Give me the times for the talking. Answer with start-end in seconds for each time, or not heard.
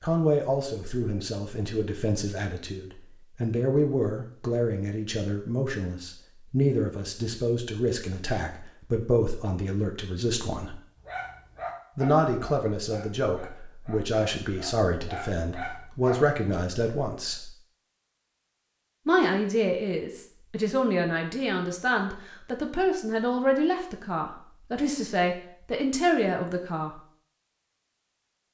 0.0-10.8, 11.9-17.5, 19.1-26.9.